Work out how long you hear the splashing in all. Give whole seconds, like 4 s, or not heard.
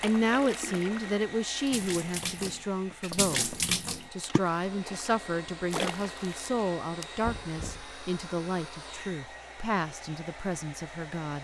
7 s.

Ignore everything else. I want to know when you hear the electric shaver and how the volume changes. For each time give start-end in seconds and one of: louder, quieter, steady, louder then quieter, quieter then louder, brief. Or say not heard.
not heard.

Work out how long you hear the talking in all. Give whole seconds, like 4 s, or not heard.
11 s.